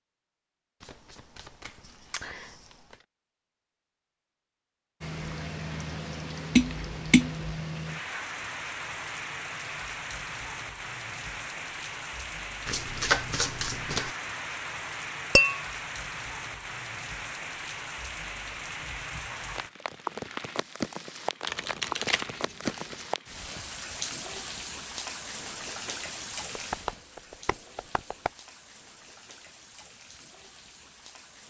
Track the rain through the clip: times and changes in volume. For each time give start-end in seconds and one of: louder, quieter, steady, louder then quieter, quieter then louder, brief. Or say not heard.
5.0-31.4 quieter.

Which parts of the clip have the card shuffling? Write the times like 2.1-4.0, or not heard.
0.8-2.6, 12.7-14.2, 21.4-23.1.